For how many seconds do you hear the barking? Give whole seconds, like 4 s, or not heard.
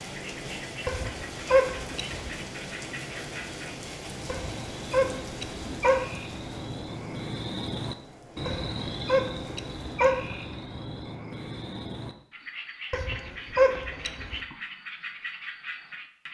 7 s.